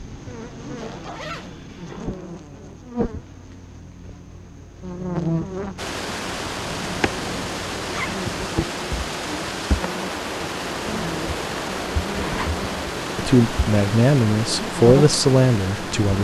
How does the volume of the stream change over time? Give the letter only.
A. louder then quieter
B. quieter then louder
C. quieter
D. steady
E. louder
D.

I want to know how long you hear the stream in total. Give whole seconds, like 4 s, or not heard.
10 s.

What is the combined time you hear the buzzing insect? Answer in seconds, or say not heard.
16 s.